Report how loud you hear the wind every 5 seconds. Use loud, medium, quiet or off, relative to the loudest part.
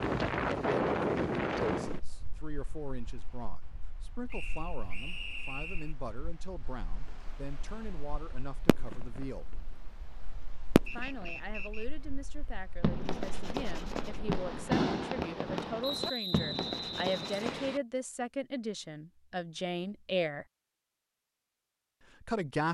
loud, quiet, quiet, off, off.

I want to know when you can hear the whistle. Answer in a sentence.
The whistle can be heard from 4.3 to 6.0 s, from 10.8 to 11.8 s and from 15.8 to 17.8 s.